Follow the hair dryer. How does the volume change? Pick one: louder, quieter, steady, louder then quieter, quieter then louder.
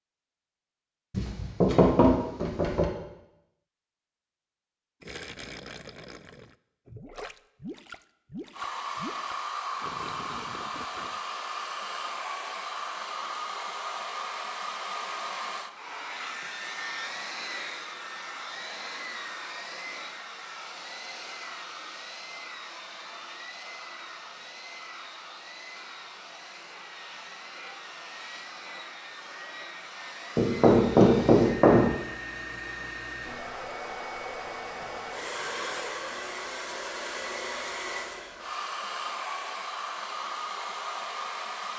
quieter then louder.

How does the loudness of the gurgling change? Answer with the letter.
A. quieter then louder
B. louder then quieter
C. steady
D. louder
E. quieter
C.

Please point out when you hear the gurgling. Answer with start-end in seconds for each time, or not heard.
5.0-11.2.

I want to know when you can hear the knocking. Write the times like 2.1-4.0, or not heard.
1.1-2.9, 30.4-31.9.